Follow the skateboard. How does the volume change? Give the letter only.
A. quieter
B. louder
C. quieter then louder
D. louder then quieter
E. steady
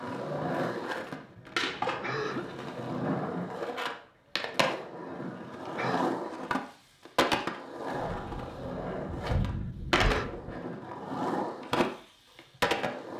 E.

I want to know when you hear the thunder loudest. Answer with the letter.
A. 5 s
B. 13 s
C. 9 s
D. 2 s
C.